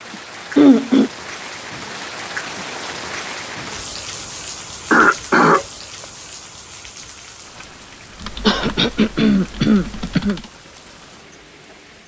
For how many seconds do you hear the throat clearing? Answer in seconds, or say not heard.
3 s.